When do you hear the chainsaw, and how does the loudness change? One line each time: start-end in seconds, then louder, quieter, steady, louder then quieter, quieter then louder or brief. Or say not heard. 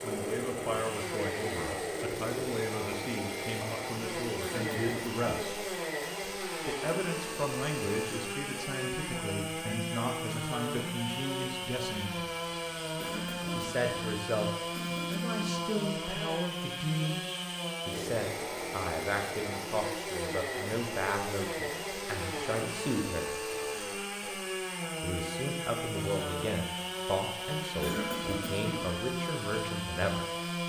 0.0-30.6 steady.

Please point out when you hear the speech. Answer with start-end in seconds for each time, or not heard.
0.0-5.5, 6.7-12.2, 13.6-14.5, 15.1-17.2, 17.9-23.2, 25.0-30.6.